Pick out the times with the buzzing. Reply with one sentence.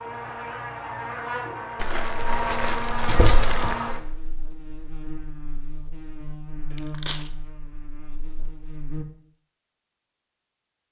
You can hear the buzzing from 0.0 to 9.1 s.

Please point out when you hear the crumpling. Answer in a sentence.
The crumpling can be heard from 1.8 to 3.8 s and from 6.8 to 7.3 s.